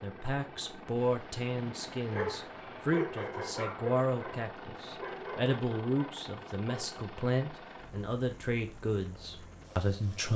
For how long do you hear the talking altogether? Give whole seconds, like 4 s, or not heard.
10 s.